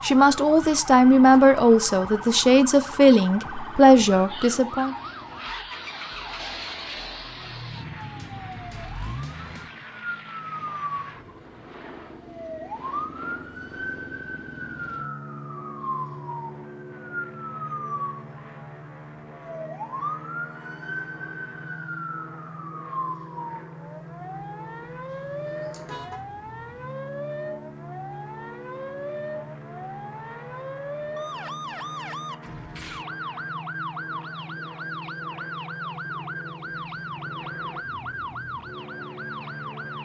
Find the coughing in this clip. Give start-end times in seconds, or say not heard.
not heard.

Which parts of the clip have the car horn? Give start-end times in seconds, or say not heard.
25.1-26.2.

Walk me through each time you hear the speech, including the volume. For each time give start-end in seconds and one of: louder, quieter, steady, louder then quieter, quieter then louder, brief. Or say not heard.
0.0-5.0 steady.